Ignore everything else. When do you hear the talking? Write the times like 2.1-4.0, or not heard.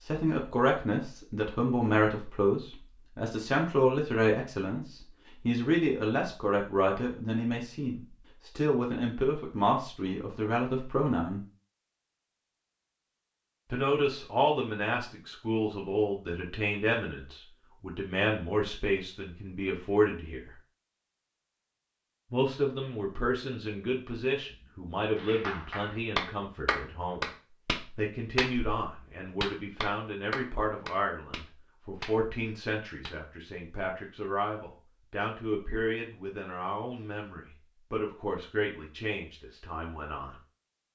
0.0-11.4, 13.7-20.5, 22.3-27.3, 27.9-40.4.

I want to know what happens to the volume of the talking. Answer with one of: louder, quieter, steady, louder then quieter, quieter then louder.
quieter.